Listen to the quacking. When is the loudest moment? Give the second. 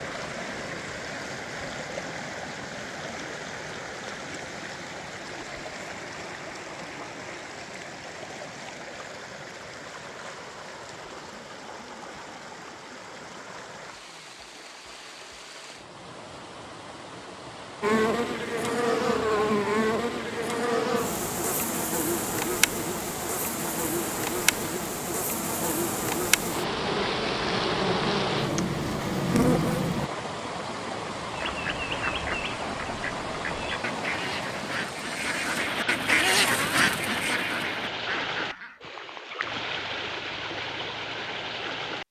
36 s.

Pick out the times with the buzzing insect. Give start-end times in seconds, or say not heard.
17.8-30.1.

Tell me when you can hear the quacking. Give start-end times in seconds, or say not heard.
31.2-38.8.